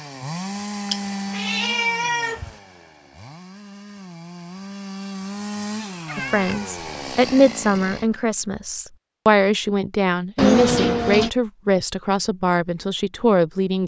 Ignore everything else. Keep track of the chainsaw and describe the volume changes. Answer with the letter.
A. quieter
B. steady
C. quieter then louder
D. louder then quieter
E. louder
C.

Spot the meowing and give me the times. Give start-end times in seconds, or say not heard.
0.9-2.5, 6.0-6.8, 10.3-11.3.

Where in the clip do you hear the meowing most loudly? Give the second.
11 s.